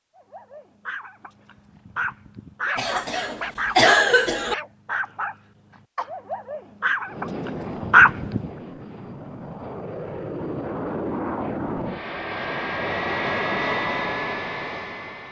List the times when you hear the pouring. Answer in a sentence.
The pouring can't be heard in this clip.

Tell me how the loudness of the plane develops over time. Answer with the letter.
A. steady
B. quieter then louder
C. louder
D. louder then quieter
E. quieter
C.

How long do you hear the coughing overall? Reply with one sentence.
You can hear the coughing for 2 seconds altogether.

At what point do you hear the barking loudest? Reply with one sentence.
The volume of the barking peaks at 8 seconds.